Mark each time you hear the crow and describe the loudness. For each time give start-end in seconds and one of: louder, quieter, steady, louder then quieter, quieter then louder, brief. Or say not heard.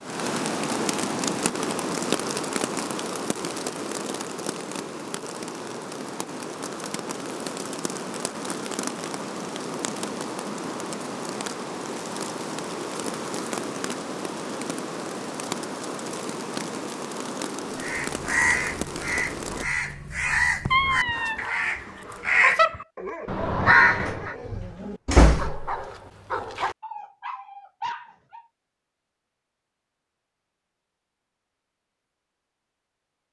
17.8-24.4 louder.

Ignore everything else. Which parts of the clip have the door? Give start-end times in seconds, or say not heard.
24.1-25.8.